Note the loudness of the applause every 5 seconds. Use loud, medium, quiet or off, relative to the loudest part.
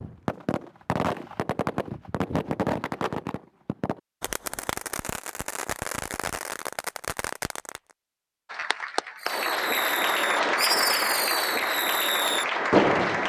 off, loud, loud.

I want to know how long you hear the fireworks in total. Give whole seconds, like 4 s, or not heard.
12 s.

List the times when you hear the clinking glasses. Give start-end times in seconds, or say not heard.
not heard.